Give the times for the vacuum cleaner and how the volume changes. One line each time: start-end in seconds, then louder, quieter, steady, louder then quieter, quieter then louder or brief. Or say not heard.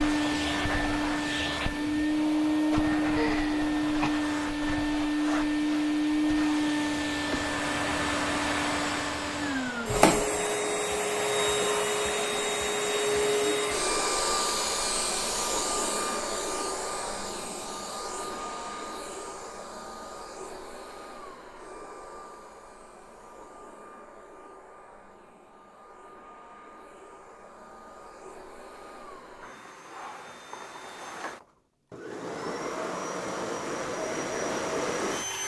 0.0-35.4 quieter then louder.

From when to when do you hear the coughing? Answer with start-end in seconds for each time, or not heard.
3.1-4.1.